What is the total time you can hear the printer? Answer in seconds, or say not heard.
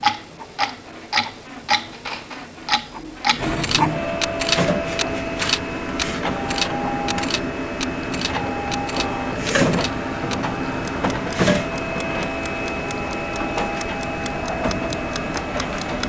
16 s.